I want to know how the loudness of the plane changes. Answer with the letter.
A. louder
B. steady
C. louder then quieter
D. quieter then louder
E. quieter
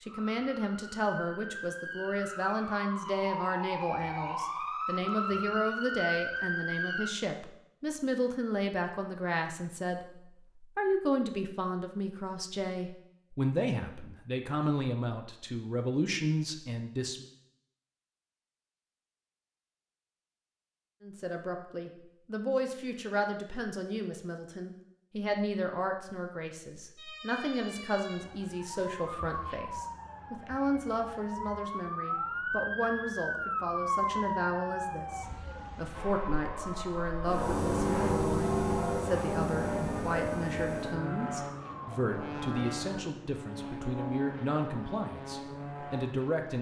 E.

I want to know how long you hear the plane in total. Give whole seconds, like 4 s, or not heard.
9 s.